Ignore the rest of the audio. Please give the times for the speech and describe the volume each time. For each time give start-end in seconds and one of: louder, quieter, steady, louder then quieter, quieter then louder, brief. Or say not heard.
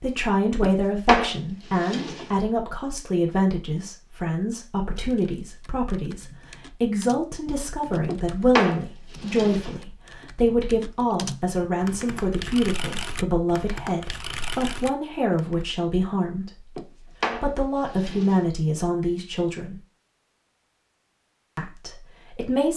0.0-19.8 steady
21.6-22.7 brief.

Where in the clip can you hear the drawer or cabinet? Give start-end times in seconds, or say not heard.
0.6-2.3, 8.1-9.8, 16.8-18.4.